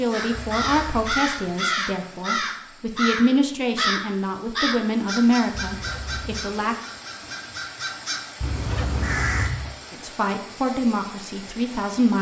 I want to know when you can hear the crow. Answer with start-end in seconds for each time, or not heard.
0.1-9.6.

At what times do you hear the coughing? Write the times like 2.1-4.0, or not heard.
not heard.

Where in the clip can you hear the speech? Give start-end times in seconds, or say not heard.
0.0-6.8, 9.9-12.1.